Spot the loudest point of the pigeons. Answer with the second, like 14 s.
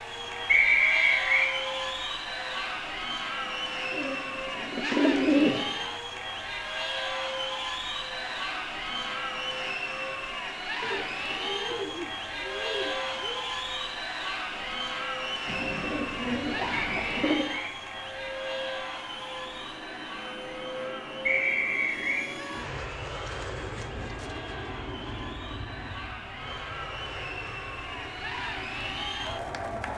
5 s.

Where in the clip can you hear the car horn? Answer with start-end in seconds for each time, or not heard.
not heard.